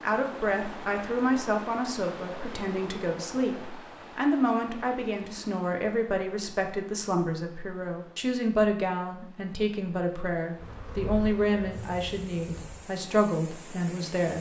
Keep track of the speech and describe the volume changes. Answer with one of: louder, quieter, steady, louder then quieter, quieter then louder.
steady.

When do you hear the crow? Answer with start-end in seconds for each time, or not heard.
not heard.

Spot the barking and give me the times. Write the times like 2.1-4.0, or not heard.
not heard.